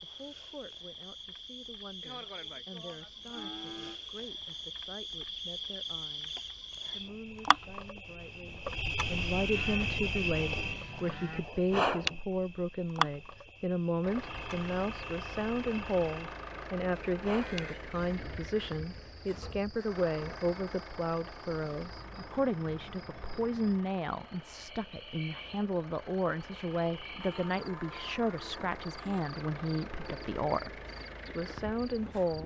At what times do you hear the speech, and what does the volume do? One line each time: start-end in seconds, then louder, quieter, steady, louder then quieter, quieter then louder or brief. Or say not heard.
0.0-32.4 louder.